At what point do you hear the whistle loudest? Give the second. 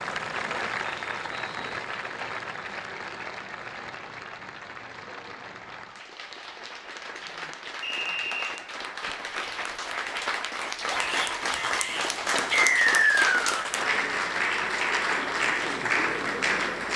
13 s.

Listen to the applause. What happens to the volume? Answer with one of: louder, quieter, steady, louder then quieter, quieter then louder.
quieter then louder.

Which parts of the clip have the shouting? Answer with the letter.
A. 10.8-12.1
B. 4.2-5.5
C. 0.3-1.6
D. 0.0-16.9
A.